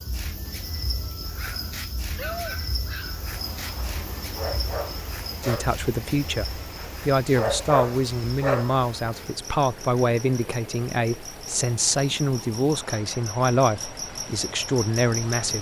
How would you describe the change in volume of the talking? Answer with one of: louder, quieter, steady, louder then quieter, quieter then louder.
steady.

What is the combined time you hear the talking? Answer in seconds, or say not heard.
10 s.